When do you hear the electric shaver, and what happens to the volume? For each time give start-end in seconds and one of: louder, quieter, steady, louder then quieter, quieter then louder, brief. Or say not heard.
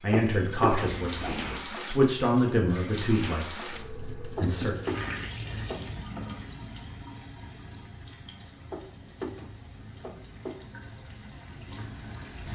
not heard.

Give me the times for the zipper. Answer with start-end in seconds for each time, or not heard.
0.7-1.6.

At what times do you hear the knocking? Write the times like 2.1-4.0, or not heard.
0.1-1.0, 4.3-6.0, 8.7-10.6.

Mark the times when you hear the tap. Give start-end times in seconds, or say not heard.
0.0-12.4.